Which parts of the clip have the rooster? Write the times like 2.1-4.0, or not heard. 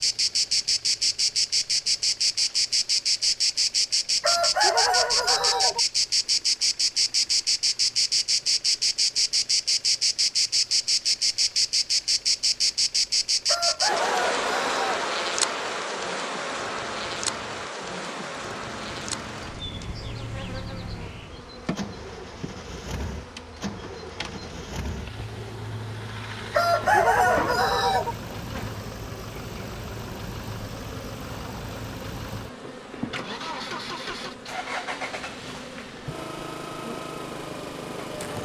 4.2-5.8, 13.4-15.1, 26.5-28.1.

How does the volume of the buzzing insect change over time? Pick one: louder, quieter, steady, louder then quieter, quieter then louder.
quieter.